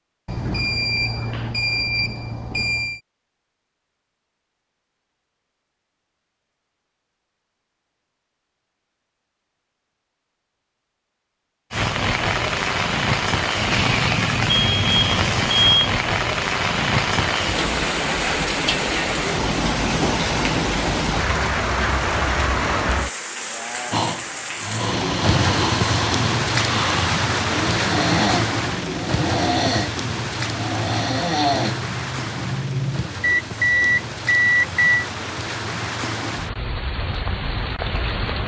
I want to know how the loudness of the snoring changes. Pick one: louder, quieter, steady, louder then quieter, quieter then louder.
steady.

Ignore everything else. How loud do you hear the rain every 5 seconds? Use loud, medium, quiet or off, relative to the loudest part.
off, off, loud, loud, loud, loud, medium, medium.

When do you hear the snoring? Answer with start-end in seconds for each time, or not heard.
23.9-33.1.